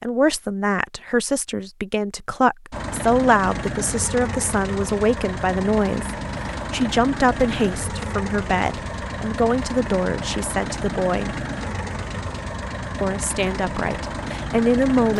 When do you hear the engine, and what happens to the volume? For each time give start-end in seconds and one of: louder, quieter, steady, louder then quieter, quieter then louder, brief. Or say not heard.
2.7-15.1 steady.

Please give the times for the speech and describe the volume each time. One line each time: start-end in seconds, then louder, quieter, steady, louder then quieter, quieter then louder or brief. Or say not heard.
0.0-11.3 steady
13.0-15.1 brief.